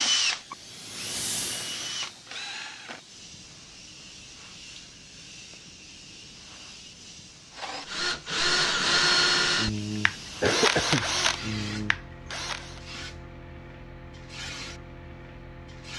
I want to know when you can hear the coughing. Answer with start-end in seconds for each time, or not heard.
10.4-11.1.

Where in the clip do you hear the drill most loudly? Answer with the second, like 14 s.
9 s.